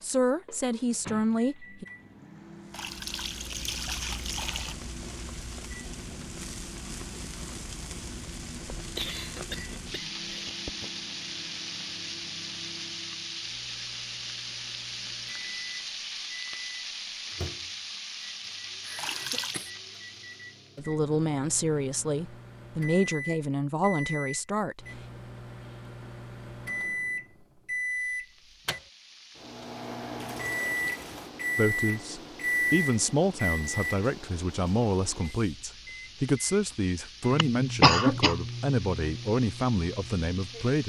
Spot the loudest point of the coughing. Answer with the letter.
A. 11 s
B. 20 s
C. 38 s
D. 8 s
C.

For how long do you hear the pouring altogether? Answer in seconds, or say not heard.
4 s.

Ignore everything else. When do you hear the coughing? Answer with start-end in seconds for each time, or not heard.
8.8-10.9, 18.9-19.7, 37.4-38.4.